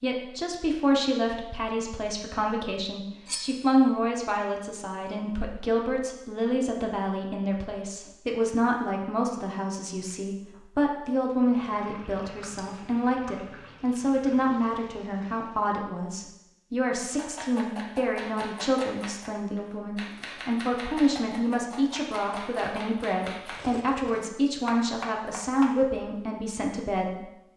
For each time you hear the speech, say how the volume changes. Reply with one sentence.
The speech can be heard from 0.0 to 27.3 s, at a steady volume.